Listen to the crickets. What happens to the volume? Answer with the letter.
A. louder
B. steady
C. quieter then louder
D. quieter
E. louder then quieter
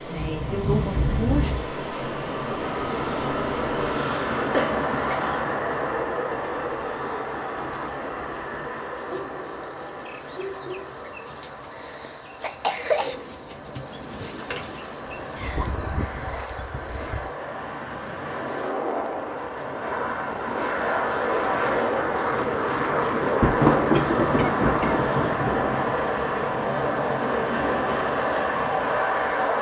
E.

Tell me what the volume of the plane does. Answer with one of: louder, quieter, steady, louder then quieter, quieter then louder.
quieter then louder.